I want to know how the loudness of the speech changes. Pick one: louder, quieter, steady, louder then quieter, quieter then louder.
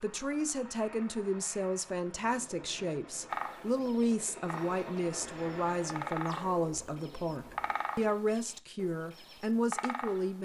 steady.